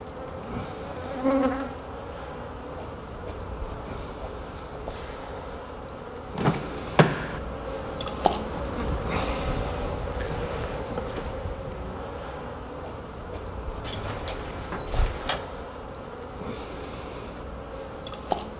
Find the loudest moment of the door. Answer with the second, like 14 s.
7 s.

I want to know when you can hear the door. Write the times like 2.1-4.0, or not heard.
6.3-7.4, 13.8-15.4.